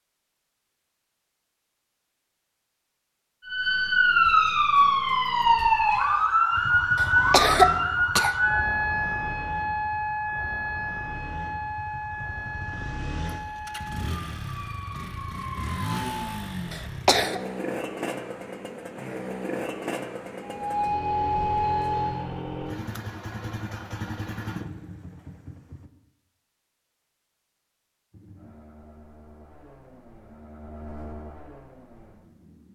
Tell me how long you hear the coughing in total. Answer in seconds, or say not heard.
2 s.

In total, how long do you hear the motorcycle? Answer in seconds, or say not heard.
24 s.